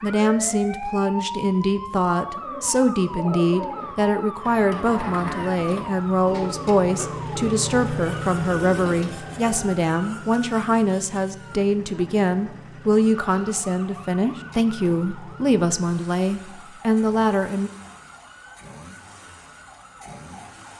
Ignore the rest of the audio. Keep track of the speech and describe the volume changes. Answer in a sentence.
The loudness of the speech stays about the same.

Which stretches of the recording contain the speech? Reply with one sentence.
The speech can be heard from 0.0 to 17.7 s.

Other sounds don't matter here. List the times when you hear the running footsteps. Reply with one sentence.
The running footsteps can't be heard in this clip.